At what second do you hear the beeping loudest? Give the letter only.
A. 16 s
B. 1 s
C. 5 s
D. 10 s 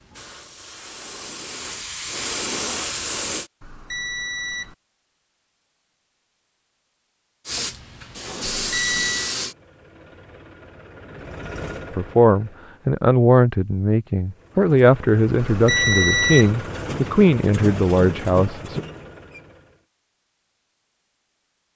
A.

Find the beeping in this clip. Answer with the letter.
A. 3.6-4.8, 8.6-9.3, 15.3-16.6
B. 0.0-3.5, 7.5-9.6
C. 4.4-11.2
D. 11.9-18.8
A.